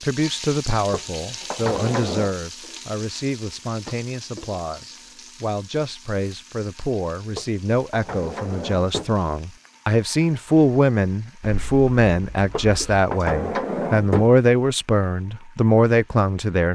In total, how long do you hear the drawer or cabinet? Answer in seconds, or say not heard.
5 s.